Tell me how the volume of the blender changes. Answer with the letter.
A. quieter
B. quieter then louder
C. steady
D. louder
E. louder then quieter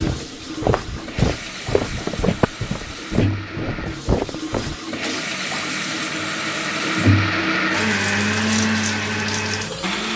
D.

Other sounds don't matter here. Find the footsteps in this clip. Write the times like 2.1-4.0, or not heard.
0.0-4.8.